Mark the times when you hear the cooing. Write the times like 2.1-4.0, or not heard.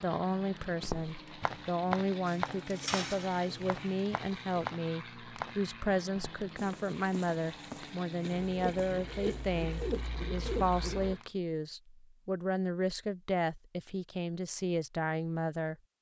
2.2-4.7, 8.3-11.2.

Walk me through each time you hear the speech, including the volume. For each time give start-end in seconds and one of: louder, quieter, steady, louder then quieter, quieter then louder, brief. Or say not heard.
0.0-15.8 steady.